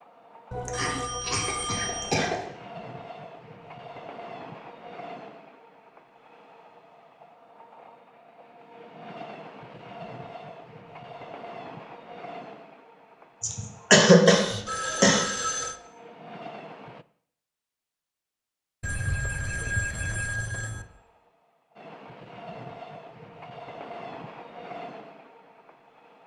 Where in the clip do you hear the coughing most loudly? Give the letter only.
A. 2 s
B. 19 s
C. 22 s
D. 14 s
D.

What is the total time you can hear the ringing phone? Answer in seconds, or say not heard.
5 s.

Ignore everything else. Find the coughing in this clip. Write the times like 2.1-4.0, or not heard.
0.7-2.4, 13.4-15.2.